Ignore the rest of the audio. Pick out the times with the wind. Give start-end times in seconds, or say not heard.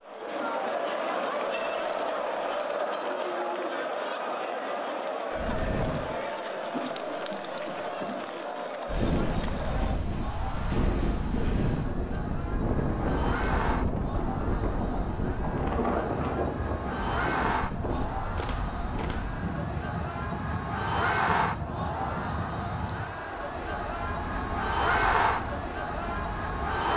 5.3-26.9.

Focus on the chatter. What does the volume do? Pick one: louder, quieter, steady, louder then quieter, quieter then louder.
quieter then louder.